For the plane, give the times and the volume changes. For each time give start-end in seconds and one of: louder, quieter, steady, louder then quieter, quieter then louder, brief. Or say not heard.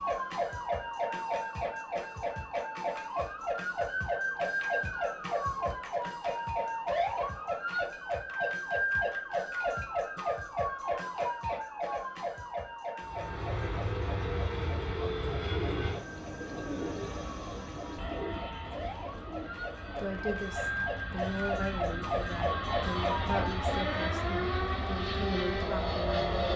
13.0-26.5 quieter then louder.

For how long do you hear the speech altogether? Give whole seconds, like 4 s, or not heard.
6 s.